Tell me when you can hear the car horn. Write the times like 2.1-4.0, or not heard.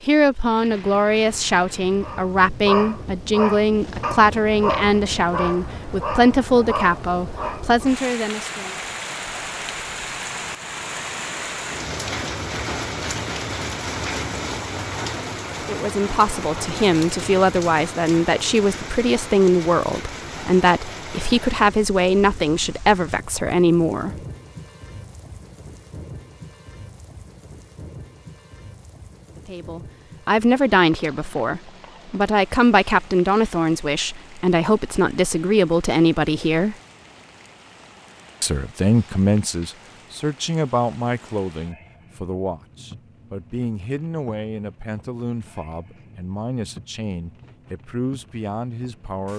not heard.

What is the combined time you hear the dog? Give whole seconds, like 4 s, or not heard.
6 s.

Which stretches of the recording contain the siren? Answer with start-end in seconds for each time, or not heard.
not heard.